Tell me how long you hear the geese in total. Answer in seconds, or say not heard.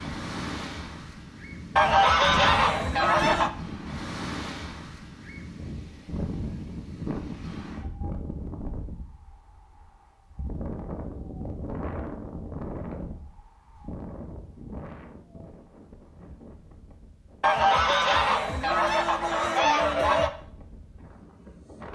5 s.